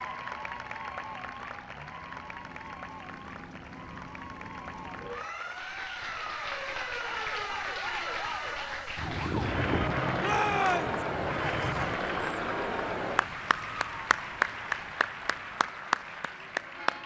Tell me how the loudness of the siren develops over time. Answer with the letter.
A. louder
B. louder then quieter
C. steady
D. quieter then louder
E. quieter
B.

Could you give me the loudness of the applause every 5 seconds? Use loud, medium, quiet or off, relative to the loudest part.
medium, medium, loud, loud.